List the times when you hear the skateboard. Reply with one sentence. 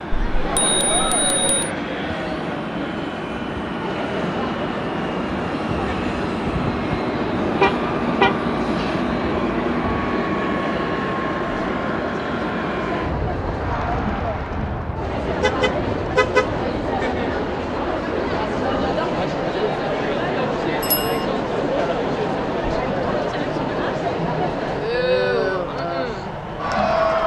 You can't hear the skateboard here.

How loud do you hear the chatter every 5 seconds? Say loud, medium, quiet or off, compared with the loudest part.
medium, medium, medium, loud, loud, loud.